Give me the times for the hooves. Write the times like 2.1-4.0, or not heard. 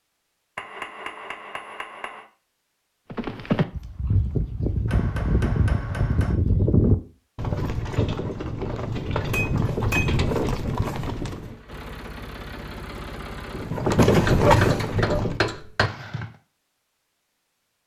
3.1-11.6, 13.6-16.2.